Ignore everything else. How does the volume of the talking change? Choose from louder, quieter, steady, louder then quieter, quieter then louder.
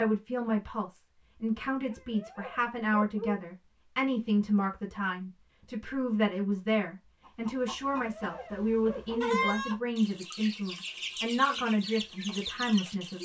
steady.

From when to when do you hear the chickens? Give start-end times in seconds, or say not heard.
7.2-13.2.